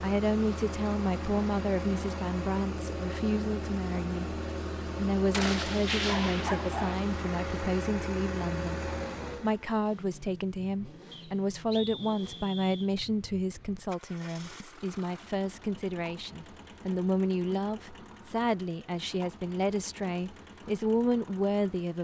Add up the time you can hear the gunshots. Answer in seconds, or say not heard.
2 s.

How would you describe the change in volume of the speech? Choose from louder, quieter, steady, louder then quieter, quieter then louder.
steady.